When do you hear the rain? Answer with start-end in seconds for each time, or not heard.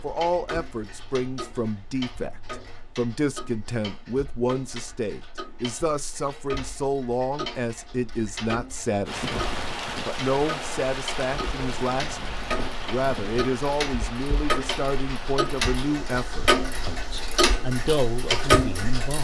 9.1-18.9.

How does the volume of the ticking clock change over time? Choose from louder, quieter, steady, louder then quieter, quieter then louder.
louder.